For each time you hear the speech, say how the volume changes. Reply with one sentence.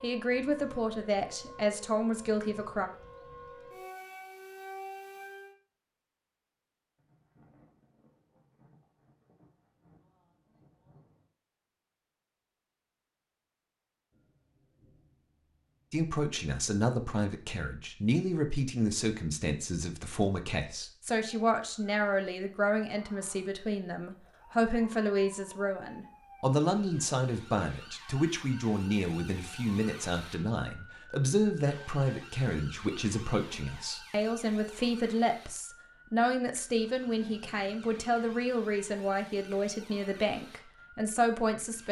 The speech can be heard briefly from 0.0 to 2.9 s; and from 15.9 to 41.8 s, at a steady volume.